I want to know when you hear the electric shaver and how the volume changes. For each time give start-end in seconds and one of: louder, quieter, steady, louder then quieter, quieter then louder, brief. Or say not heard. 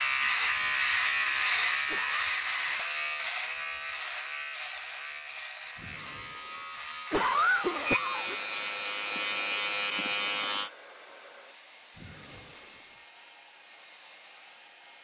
0.0-10.7 quieter then louder.